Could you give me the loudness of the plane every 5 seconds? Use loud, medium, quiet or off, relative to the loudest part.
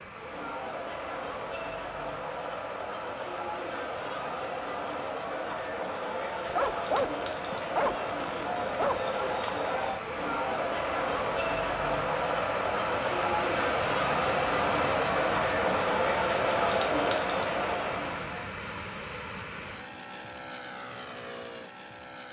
medium, medium, loud, loud, medium.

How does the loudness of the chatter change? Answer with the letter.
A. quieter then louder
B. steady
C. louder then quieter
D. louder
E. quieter
D.